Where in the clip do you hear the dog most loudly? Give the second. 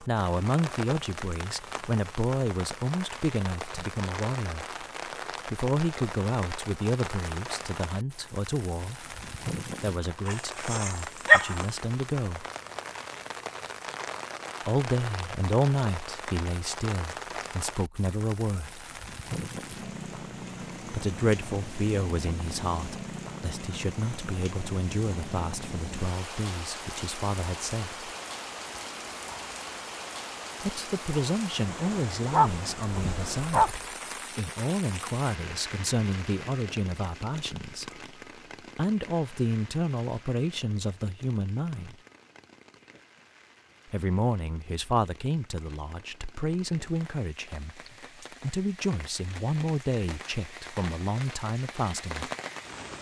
11 s.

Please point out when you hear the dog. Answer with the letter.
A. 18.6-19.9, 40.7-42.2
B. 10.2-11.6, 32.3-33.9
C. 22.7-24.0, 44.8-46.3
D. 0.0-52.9
B.